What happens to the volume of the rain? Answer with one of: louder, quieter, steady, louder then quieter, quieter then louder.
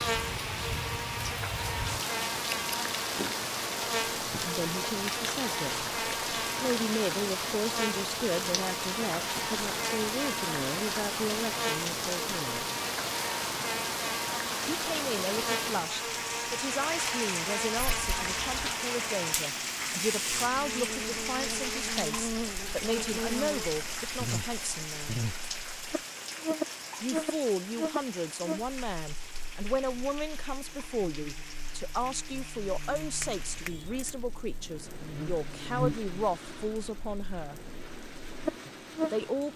quieter.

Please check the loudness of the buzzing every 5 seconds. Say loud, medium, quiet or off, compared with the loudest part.
loud, loud, loud, loud, loud, loud, quiet, loud.